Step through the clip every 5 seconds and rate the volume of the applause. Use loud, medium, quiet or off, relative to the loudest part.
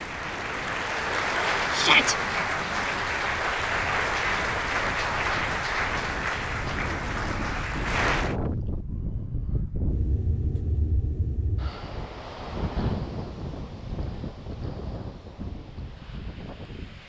loud, loud, off, off.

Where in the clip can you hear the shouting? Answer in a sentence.
The shouting can be heard from 1.7 to 2.1 s.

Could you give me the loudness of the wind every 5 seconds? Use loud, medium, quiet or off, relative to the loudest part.
medium, loud, loud, medium.